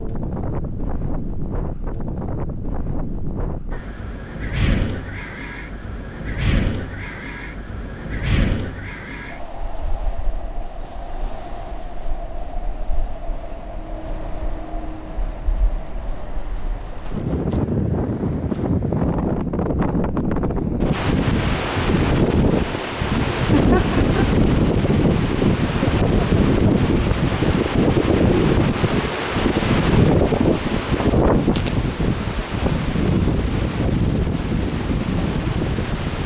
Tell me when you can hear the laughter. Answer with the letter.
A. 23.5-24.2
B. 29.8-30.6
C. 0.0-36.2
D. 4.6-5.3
A.